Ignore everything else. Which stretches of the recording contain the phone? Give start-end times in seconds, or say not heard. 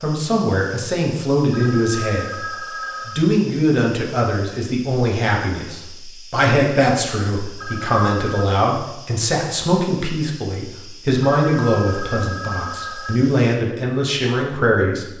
1.5-3.2, 7.5-8.5, 11.3-13.2.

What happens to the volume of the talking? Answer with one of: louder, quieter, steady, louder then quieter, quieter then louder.
steady.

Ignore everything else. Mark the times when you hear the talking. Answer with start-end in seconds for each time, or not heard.
0.0-15.1.